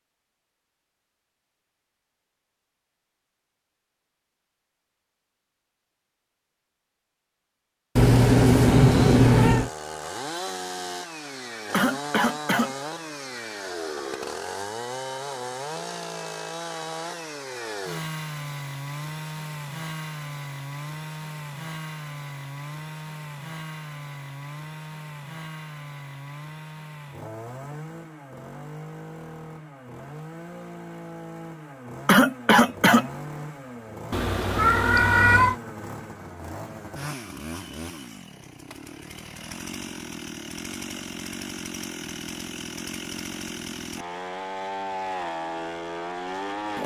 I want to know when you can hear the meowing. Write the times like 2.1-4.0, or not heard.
8.0-9.7, 34.1-35.5.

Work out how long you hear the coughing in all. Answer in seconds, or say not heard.
2 s.